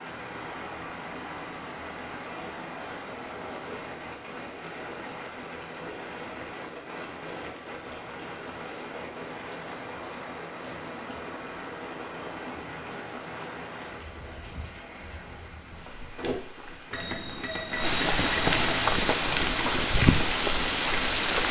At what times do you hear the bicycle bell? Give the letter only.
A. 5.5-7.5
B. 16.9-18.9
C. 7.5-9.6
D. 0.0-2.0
B.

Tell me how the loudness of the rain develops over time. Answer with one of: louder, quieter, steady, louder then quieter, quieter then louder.
louder.